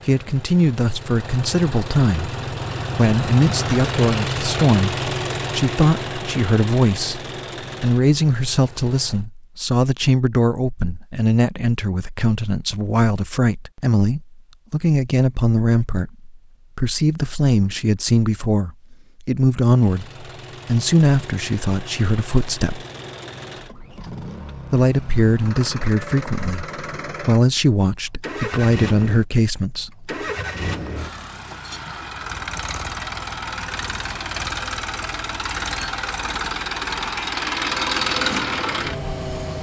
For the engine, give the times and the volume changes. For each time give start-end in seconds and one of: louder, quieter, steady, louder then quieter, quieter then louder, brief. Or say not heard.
0.0-9.2 louder then quieter
19.7-39.5 louder.